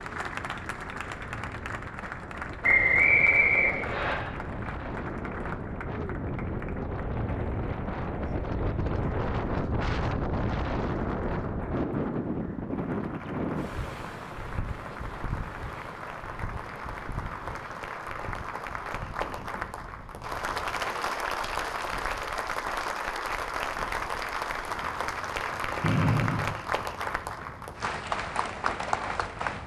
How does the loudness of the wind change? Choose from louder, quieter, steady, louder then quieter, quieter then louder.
louder then quieter.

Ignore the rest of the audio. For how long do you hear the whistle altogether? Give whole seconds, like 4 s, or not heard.
2 s.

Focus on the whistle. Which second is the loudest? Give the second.
3 s.